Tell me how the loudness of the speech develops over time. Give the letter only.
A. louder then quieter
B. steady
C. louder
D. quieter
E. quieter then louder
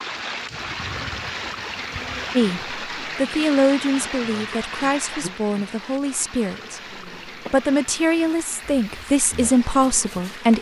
E.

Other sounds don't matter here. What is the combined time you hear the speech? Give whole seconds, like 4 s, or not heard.
8 s.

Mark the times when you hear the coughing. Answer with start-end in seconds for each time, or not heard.
not heard.